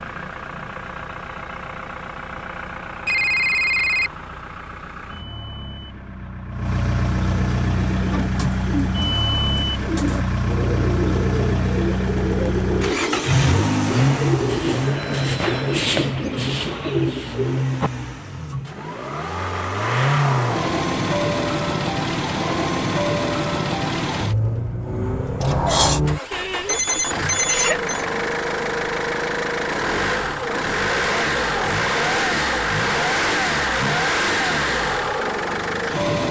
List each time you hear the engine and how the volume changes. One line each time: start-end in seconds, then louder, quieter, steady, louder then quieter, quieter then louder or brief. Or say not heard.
0.0-36.2 louder.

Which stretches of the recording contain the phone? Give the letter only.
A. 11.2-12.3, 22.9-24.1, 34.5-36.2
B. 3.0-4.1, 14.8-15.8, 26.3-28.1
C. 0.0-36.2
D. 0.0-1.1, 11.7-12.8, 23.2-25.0
B.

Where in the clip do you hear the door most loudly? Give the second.
26 s.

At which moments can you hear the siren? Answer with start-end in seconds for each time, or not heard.
not heard.